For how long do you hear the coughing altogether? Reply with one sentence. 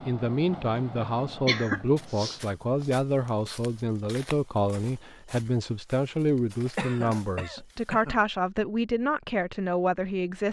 You can hear the coughing for 2 seconds altogether.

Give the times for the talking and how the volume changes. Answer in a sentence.
You can hear the talking from 0.1 to 10.4 s, at a steady volume.